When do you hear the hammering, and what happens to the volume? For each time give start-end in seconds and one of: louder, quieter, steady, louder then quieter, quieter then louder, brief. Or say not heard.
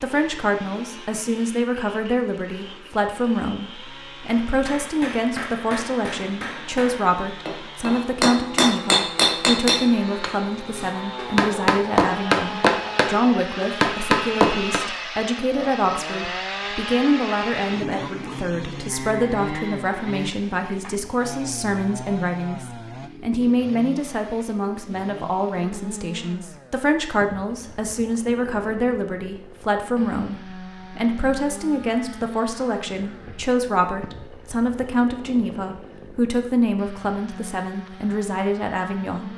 4.5-14.8 louder.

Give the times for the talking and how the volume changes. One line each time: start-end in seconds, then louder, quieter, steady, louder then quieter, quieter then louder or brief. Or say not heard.
0.0-39.3 steady.